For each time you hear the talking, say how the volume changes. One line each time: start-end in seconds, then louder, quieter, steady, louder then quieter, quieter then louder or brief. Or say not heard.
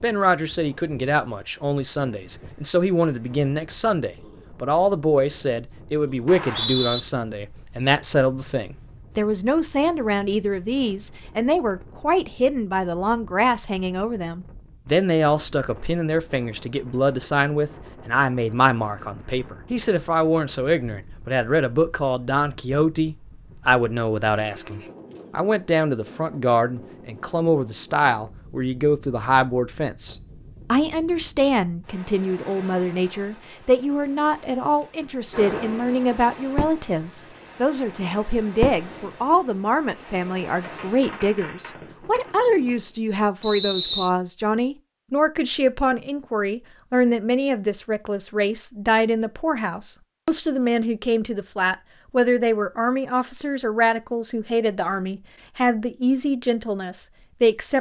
0.0-57.7 steady.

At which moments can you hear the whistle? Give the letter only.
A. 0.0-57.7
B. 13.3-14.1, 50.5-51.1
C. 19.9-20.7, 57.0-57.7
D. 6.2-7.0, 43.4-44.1
D.